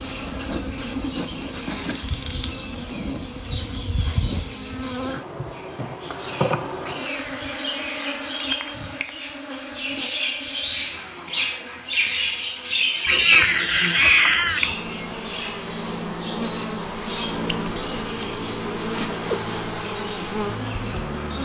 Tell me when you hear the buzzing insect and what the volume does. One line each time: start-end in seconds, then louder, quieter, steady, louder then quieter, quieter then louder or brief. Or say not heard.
0.0-21.4 quieter then louder.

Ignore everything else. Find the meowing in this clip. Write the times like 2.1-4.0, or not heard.
6.8-8.5, 13.1-14.8.